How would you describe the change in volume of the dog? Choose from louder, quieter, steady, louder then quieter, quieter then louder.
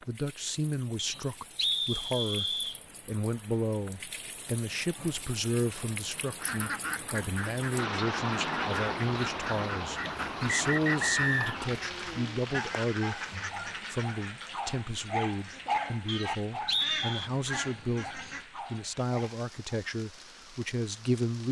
louder then quieter.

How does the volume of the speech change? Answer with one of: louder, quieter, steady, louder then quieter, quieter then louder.
steady.